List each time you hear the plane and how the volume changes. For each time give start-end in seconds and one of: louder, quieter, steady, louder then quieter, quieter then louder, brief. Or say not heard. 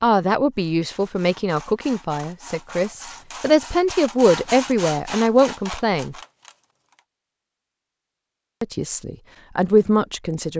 not heard.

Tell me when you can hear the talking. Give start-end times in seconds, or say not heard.
0.0-6.2, 8.6-10.5.